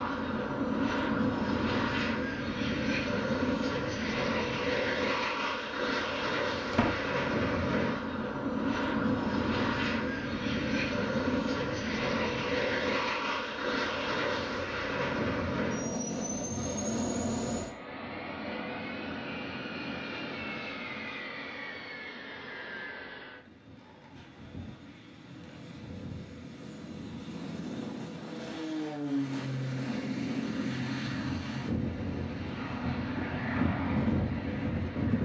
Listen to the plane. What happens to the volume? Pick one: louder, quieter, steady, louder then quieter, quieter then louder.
quieter then louder.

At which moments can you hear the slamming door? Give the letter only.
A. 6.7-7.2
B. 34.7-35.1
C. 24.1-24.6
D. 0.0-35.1
A.